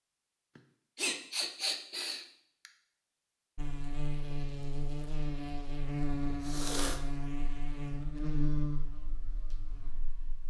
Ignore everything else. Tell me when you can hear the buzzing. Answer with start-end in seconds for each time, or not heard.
3.5-10.4.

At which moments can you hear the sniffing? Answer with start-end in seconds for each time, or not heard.
0.6-2.7, 6.4-7.0.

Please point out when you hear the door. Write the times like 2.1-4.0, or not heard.
not heard.